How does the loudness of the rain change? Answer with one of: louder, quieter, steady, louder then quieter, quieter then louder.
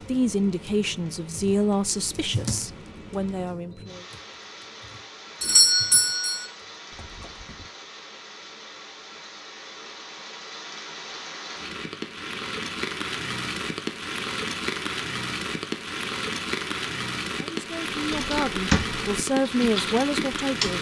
louder.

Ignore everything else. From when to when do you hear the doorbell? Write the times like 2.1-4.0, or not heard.
5.4-6.5.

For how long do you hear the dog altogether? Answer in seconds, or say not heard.
not heard.